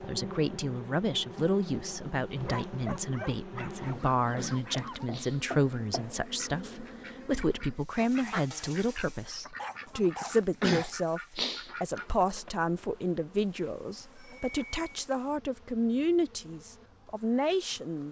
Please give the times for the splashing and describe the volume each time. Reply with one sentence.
You can't hear the splashing here.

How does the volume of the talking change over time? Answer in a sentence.
The volume of the talking stays about the same.